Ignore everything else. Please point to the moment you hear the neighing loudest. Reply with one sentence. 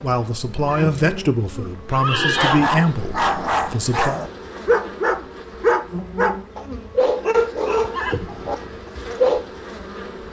The volume of the neighing peaks at 2 seconds.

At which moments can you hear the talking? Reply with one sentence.
You can hear the talking from 0.0 to 4.2 s.